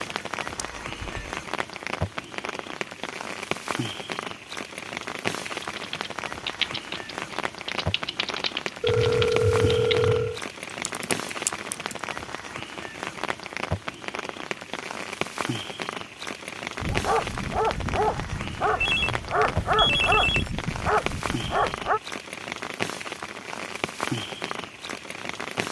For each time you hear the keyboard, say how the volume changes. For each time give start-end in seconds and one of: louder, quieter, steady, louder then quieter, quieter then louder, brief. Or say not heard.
5.5-12.0 quieter then louder.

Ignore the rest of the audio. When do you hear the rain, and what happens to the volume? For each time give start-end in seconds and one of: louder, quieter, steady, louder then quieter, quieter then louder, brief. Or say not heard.
0.0-25.6 steady.